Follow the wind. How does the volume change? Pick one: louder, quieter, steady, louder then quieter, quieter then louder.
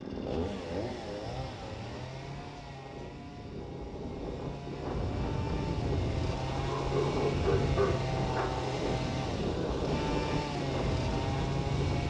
louder.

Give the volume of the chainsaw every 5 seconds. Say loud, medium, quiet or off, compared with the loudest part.
medium, loud, loud.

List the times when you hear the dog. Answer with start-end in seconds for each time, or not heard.
6.5-8.7.